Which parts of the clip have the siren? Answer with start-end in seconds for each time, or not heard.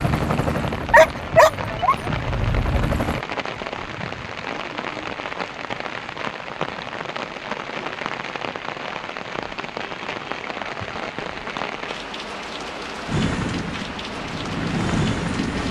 not heard.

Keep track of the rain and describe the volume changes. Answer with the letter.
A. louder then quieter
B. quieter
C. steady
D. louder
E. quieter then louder
C.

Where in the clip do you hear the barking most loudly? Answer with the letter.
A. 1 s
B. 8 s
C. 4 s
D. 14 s
A.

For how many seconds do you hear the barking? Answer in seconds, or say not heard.
2 s.